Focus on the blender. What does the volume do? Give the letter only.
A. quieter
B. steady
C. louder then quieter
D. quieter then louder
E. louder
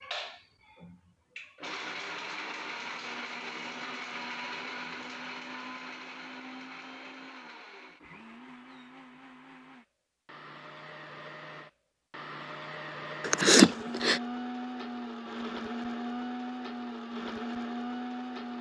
D.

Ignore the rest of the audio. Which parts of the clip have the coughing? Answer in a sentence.
The coughing can be heard from 13.2 to 14.2 s.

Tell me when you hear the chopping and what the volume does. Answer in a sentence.
You can't hear the chopping here.